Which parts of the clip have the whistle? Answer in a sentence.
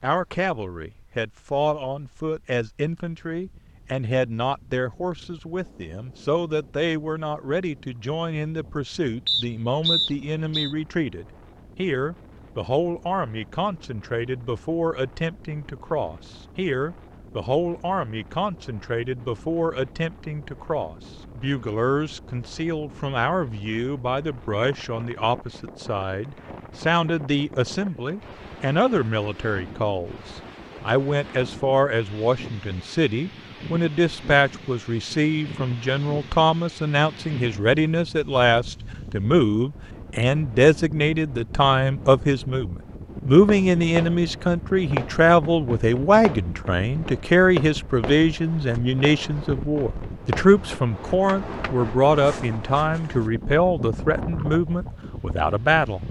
You can hear the whistle from 9.2 to 10.8 s.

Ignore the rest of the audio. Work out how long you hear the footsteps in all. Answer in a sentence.
The footsteps can't be heard in this clip.